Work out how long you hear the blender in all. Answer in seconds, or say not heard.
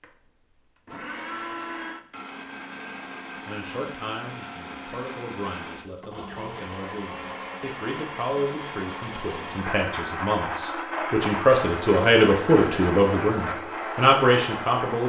15 s.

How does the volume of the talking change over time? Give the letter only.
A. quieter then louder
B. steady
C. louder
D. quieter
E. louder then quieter
C.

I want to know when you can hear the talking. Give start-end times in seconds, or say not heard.
3.5-15.0.